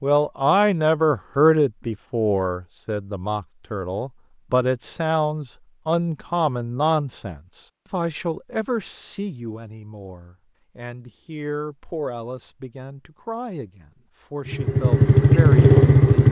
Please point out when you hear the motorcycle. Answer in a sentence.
The motorcycle can be heard from 14.4 to 16.2 s.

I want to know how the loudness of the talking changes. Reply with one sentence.
The loudness of the talking goes down.